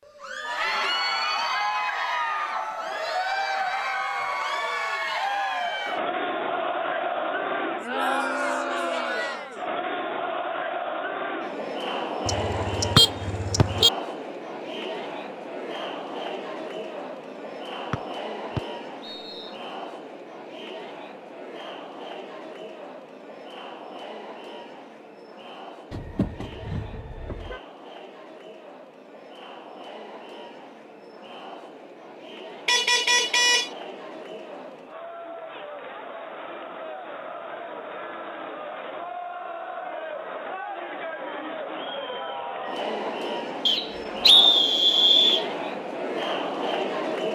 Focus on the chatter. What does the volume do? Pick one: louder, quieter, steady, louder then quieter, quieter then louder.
quieter then louder.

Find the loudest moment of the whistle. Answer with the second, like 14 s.
44 s.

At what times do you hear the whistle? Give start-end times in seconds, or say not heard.
12.9-13.7, 17.9-19.5, 43.6-45.5.